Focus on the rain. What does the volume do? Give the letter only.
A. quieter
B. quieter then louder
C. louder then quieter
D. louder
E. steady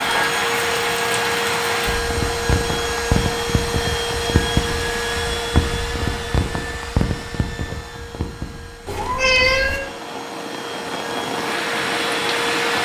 B.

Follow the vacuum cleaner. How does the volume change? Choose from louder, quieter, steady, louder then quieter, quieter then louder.
quieter then louder.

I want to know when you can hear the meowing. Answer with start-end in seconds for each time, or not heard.
8.8-9.8.